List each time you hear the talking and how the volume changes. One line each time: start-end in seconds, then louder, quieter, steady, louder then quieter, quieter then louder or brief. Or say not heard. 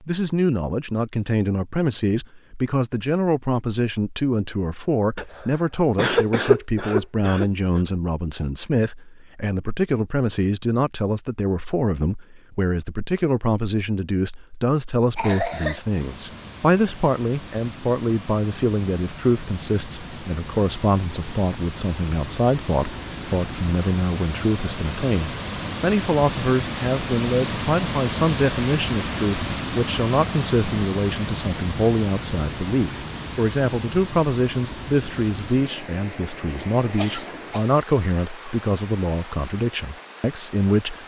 0.0-41.0 steady.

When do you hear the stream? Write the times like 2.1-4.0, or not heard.
15.7-41.0.